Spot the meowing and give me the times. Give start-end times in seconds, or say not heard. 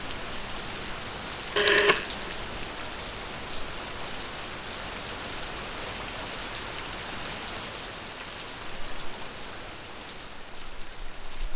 not heard.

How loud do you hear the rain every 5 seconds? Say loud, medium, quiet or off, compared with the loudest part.
loud, loud, medium.